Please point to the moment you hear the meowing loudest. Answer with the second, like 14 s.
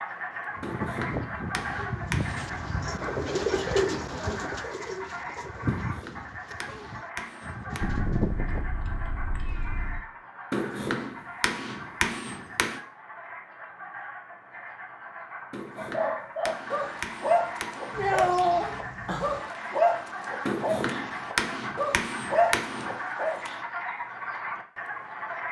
18 s.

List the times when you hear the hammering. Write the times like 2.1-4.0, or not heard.
0.6-2.5, 5.7-8.0, 10.5-12.8, 15.5-18.4, 20.4-22.9.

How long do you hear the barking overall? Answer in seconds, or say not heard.
8 s.